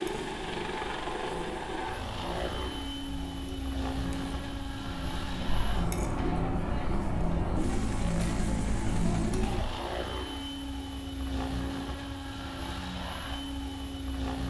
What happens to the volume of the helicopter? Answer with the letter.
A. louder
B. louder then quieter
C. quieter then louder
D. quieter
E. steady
E.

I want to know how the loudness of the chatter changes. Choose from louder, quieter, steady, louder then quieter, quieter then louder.
louder.